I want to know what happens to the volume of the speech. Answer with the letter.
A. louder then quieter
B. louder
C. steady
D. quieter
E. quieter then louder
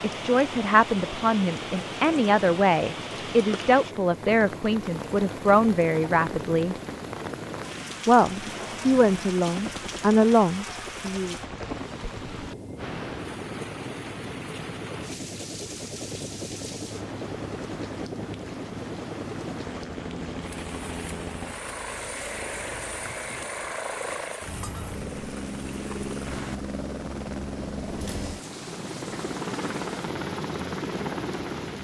C.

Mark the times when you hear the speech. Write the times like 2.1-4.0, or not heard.
0.0-6.8, 8.1-11.3.